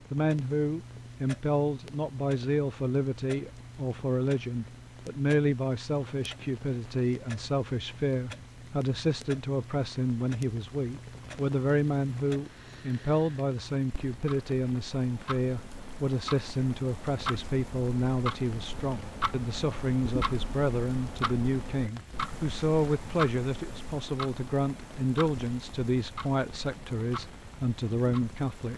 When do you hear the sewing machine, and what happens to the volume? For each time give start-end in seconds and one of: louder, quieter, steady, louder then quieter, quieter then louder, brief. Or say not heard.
not heard.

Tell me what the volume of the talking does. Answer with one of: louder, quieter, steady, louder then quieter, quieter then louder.
steady.